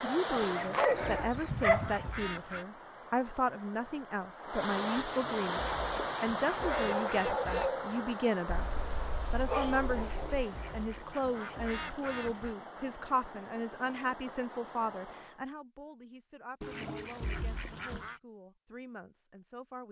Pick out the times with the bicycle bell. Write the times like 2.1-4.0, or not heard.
not heard.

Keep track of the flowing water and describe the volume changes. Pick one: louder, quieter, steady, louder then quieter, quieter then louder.
louder then quieter.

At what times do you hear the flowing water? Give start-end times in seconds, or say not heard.
0.0-15.4.